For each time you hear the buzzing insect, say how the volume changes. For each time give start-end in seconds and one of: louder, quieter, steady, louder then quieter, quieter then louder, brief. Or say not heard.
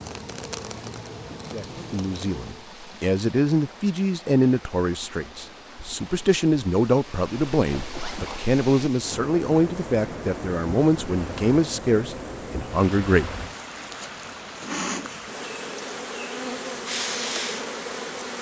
0.0-2.6 brief
11.0-18.3 louder.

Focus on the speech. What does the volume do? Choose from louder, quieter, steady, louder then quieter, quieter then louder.
steady.